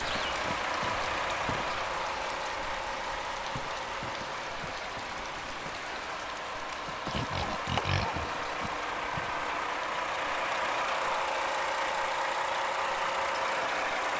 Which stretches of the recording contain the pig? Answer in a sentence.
The pig can be heard from 7.1 to 8.7 s.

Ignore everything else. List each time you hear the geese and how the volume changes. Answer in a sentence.
You can't hear the geese here.